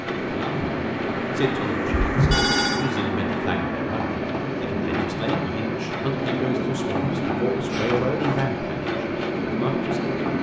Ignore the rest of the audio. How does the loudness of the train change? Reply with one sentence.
The volume of the train stays about the same.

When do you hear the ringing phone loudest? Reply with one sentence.
The loudest moment of the ringing phone is at 2 seconds.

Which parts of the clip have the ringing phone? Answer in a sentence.
The ringing phone can be heard from 1.9 to 2.9 s and from 7.7 to 8.4 s.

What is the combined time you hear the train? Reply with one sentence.
You can hear the train for 10 seconds altogether.